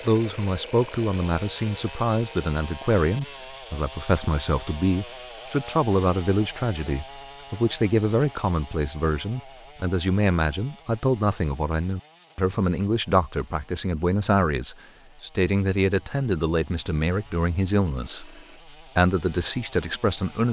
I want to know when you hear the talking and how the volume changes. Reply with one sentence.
You can hear the talking from 0.0 to 20.4 s, at a steady volume.